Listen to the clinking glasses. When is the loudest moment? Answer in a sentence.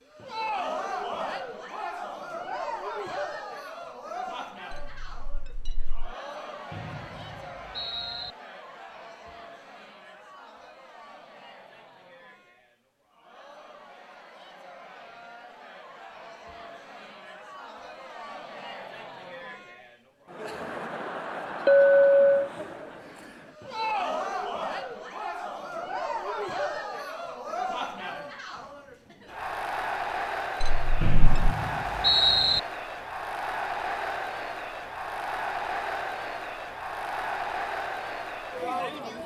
The volume of the clinking glasses peaks at 22 seconds.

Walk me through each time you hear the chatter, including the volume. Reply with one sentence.
The chatter can be heard from 0.1 to 39.2 s, getting quieter then louder.